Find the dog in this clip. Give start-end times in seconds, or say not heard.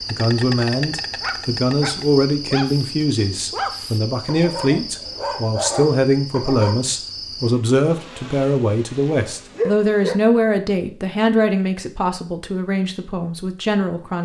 1.2-6.8.